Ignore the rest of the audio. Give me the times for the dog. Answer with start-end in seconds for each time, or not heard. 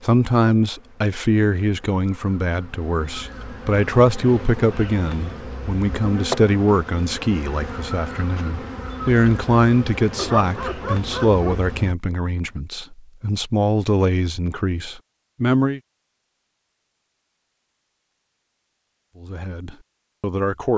10.2-11.7.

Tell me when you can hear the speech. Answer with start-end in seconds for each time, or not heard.
0.0-15.8, 19.2-20.7.